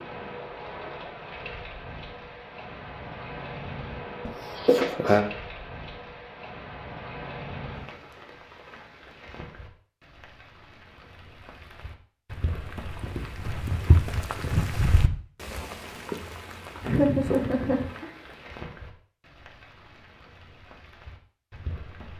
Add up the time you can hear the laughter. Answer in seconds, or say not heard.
2 s.